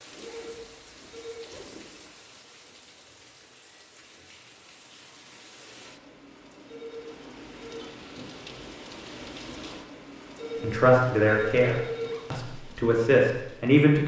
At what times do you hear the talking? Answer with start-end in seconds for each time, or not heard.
10.6-14.0.